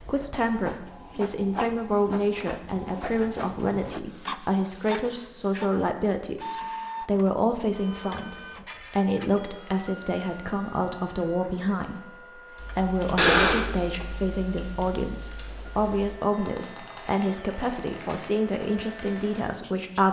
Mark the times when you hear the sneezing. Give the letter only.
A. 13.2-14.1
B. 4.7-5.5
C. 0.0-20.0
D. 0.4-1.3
A.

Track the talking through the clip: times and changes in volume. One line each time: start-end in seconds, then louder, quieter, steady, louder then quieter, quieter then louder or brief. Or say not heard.
0.0-20.0 steady.